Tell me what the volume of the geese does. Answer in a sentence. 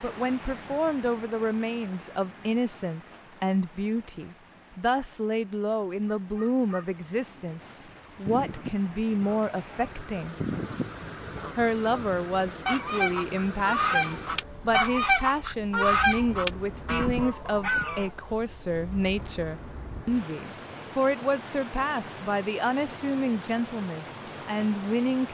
The volume of the geese goes up.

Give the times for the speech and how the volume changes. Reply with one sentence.
You can hear the speech from 0.0 to 10.3 s, at a steady volume; and from 11.6 to 25.2 s, at a steady volume.